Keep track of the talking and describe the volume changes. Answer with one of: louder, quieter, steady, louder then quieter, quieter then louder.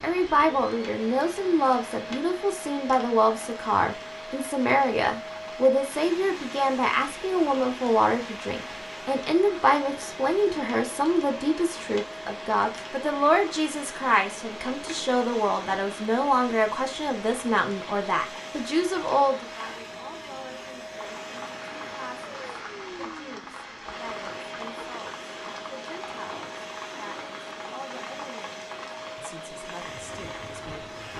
quieter.